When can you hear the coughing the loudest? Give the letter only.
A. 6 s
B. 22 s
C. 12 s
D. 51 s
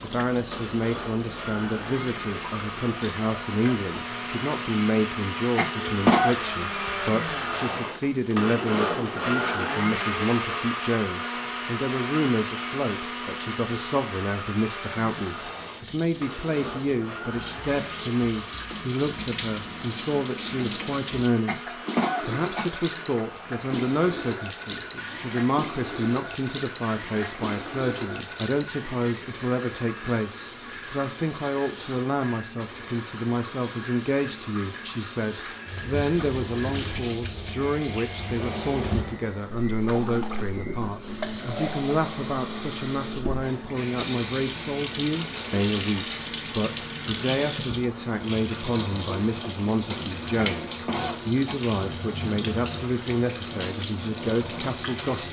A.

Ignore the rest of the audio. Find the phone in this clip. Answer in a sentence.
The phone can't be heard in this clip.